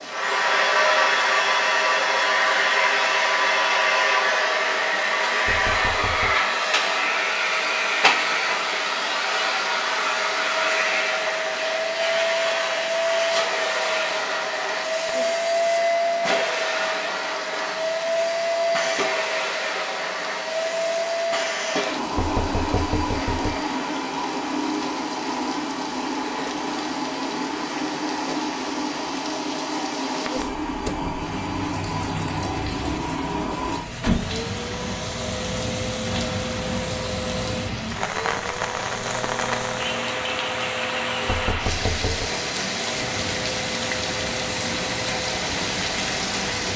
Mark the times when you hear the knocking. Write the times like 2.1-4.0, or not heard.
5.5-6.3, 22.1-23.6, 41.2-42.3.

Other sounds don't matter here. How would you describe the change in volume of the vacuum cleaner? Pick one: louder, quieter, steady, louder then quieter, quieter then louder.
quieter.